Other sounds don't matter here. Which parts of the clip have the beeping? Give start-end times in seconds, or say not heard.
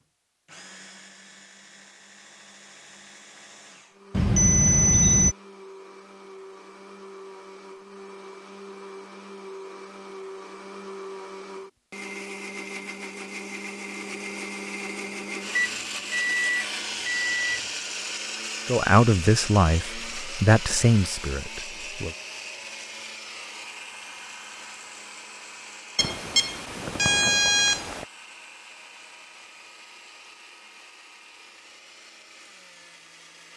4.2-5.3, 15.6-17.7, 25.9-28.1.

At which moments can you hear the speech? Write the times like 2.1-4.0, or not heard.
18.6-22.1.